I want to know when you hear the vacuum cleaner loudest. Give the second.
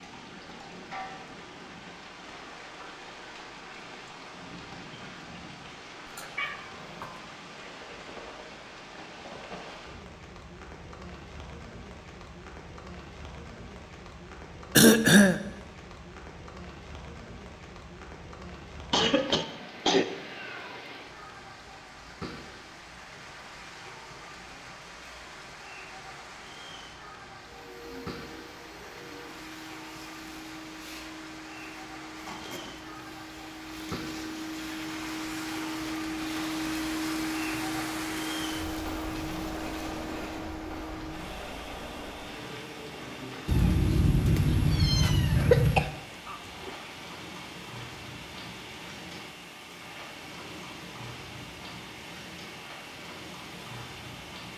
37 s.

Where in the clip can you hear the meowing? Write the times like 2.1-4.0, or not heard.
6.0-7.2, 19.1-20.8, 43.5-45.9.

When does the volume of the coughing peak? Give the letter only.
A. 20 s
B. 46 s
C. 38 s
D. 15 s
D.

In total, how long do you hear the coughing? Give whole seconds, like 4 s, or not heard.
3 s.